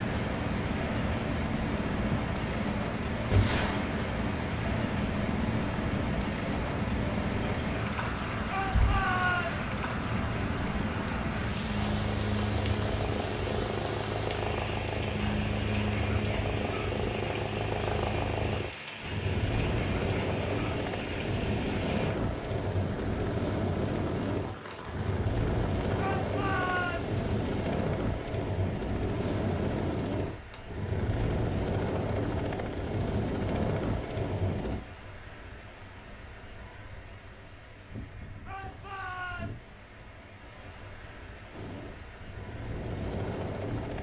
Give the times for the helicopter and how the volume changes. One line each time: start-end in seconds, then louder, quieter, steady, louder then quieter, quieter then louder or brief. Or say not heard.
0.0-34.9 steady
41.5-43.9 brief.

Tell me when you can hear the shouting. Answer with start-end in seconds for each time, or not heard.
8.4-9.6, 25.9-27.2, 38.5-39.5.